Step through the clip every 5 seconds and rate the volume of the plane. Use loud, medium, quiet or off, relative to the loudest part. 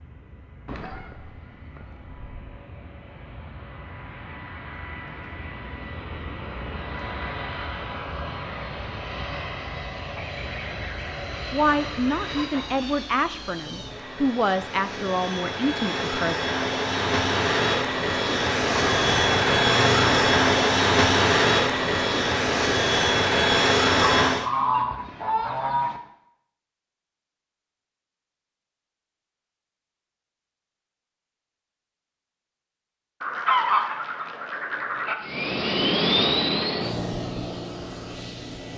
quiet, quiet, quiet, loud, loud, off, off, medium.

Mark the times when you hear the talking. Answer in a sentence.
You can hear the talking from 11.5 to 16.4 s.